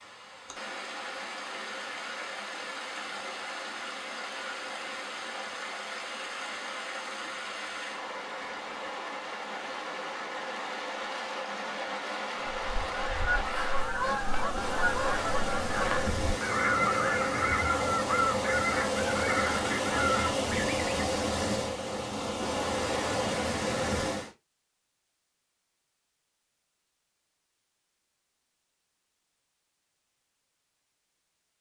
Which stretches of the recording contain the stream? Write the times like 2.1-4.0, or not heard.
0.0-24.3.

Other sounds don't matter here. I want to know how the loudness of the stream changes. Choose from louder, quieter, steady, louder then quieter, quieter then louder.
louder.